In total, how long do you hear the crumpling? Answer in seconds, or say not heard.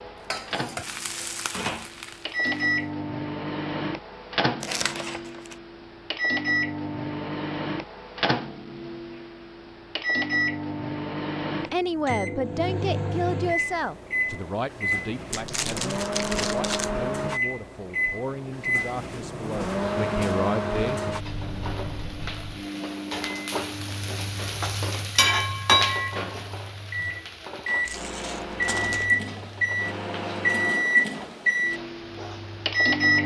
4 s.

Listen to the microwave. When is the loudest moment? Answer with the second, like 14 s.
31 s.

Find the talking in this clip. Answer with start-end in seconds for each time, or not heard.
11.7-21.0.